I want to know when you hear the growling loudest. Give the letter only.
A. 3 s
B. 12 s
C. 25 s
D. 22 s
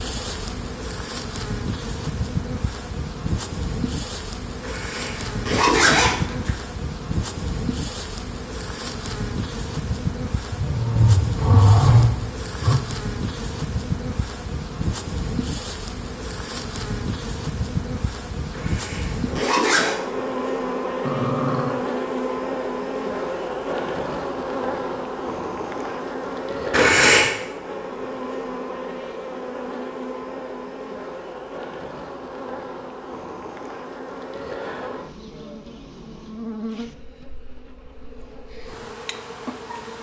B.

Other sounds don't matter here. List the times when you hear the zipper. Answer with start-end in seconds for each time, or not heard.
4.6-6.5, 18.5-19.9, 26.7-27.4.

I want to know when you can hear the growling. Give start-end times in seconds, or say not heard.
10.5-12.8, 21.1-21.8.